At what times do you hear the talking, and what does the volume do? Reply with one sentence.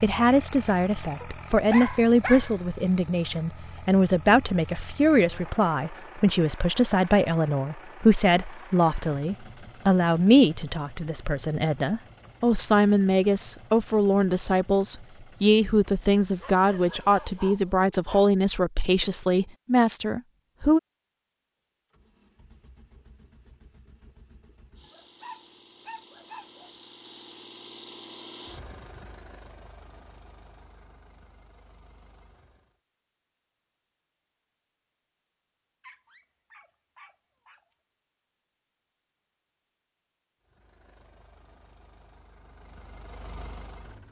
You can hear the talking from 0.0 to 20.8 s, at a steady volume.